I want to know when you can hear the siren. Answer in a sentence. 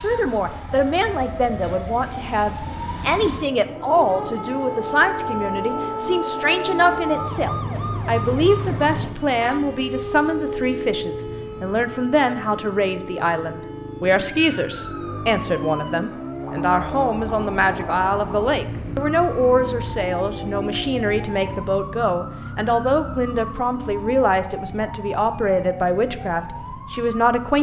The siren can be heard from 0.0 to 27.5 s.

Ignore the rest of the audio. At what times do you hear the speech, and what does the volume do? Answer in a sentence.
The speech can be heard from 0.0 to 27.5 s, at a steady volume.